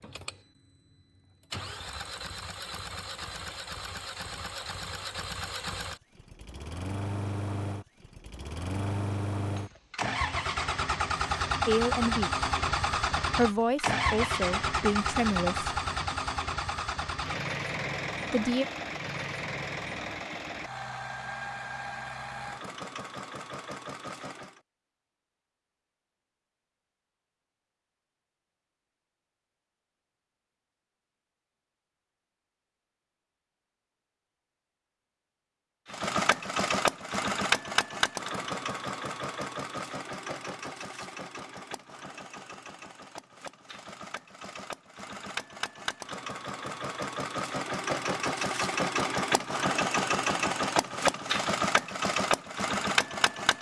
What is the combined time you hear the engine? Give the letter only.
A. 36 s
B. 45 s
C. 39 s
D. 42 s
D.